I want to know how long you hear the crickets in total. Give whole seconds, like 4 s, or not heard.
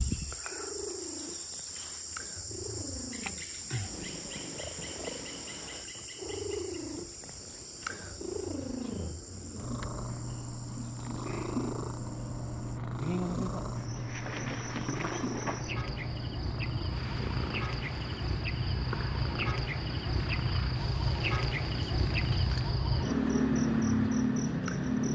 25 s.